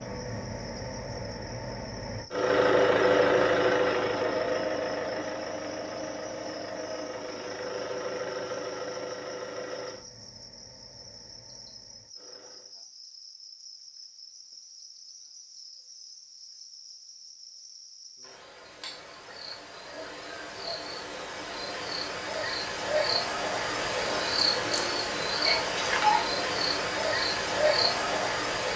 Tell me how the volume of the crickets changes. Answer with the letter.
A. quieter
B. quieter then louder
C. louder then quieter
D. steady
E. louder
E.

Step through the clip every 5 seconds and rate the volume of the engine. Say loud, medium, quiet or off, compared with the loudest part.
loud, medium, quiet, off, off, off.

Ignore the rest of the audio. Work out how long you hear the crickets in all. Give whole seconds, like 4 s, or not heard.
29 s.